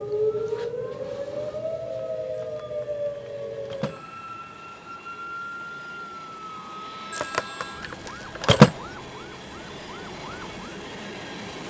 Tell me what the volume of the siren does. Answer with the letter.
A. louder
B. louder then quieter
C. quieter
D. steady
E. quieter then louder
C.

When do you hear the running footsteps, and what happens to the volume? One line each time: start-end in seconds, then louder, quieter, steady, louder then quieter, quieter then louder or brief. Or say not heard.
not heard.